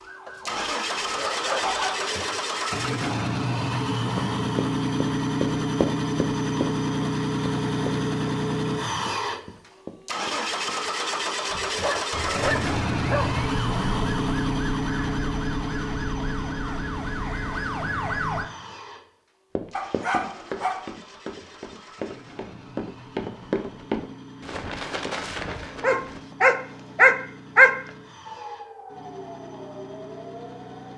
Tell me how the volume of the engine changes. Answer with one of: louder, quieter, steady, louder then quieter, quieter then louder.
quieter.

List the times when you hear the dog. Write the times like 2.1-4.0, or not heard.
0.2-2.0, 11.5-13.3, 19.8-20.9, 25.8-27.8.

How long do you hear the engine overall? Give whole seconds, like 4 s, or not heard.
31 s.